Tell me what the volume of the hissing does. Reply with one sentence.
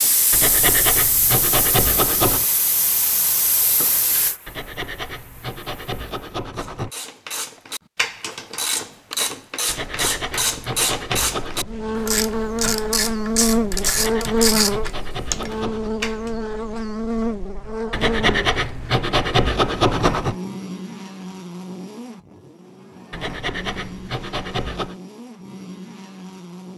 The volume of the hissing goes down.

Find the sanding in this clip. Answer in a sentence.
You can hear the sanding from 0.3 to 2.5 s, from 4.5 to 6.9 s, from 9.7 to 11.7 s, from 13.7 to 15.9 s, from 17.9 to 20.4 s and from 23.1 to 24.9 s.